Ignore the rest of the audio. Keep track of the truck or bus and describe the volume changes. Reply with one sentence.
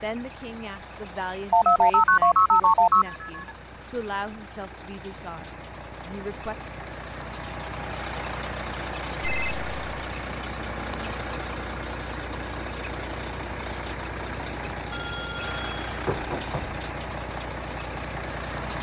The volume of the truck or bus goes up.